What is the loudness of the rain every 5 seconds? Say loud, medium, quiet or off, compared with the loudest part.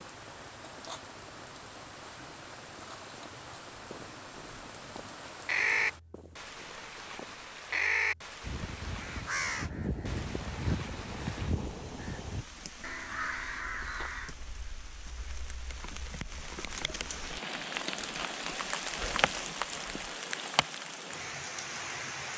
medium, medium, medium, loud, loud.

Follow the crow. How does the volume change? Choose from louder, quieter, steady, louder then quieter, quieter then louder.
quieter.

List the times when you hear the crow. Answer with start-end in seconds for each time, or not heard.
3.9-14.3.